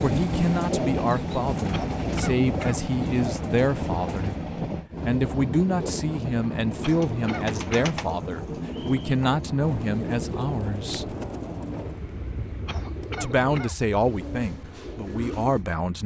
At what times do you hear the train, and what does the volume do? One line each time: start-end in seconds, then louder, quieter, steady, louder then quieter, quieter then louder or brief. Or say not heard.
0.0-16.0 quieter.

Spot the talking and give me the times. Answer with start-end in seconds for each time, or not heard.
0.0-4.3, 5.0-11.2, 13.2-16.0.